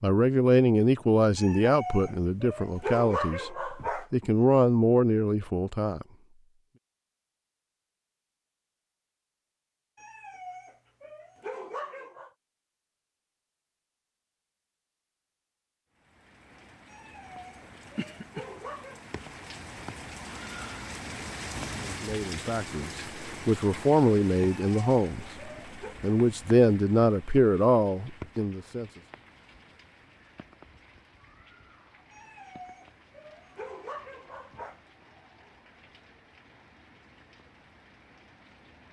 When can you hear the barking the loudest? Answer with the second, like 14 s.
3 s.